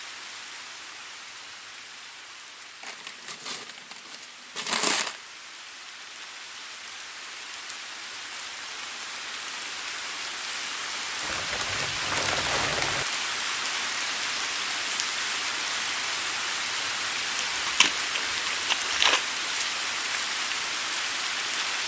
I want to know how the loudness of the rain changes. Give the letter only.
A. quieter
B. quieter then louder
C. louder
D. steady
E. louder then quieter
C.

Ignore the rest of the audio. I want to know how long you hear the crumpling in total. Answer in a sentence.
The crumpling can be heard for 6 seconds in total.